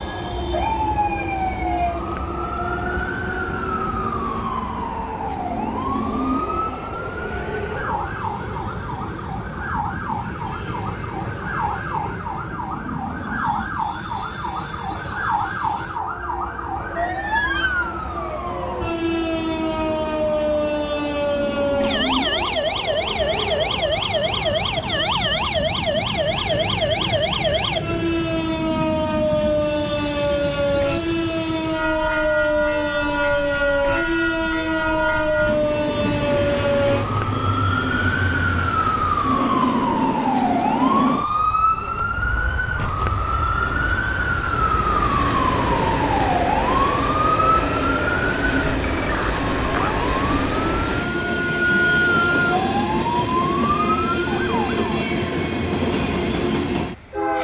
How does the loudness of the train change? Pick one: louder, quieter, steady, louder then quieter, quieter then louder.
louder.